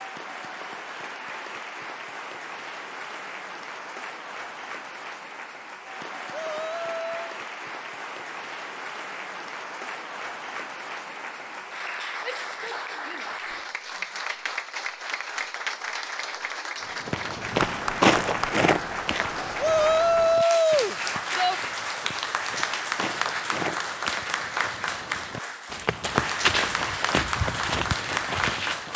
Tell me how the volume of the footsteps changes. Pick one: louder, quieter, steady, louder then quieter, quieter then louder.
quieter then louder.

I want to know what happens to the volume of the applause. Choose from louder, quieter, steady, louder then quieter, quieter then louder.
louder.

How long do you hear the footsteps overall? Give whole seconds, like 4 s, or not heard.
12 s.